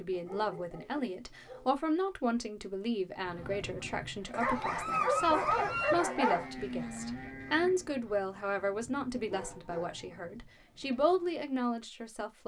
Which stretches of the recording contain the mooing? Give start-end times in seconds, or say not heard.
6.0-8.0.